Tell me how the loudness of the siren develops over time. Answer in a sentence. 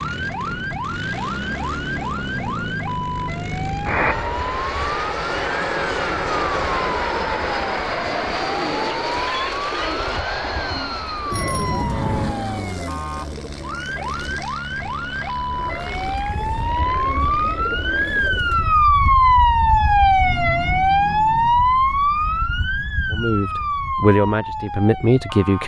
The volume of the siren goes up.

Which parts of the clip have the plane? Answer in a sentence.
The plane can be heard from 0.0 to 18.3 s.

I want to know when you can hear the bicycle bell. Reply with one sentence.
You can hear the bicycle bell from 11.3 to 12.3 s.